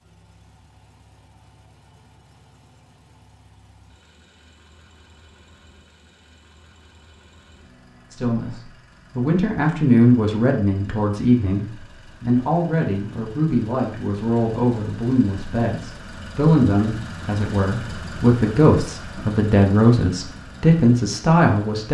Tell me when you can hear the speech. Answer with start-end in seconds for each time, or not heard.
8.1-21.9.